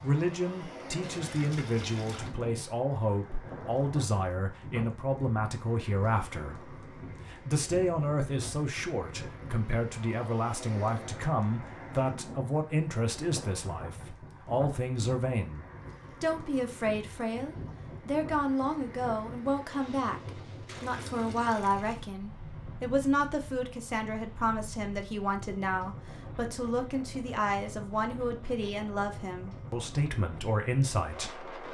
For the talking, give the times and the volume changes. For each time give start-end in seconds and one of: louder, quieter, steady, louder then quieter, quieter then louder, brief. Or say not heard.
0.0-31.5 steady.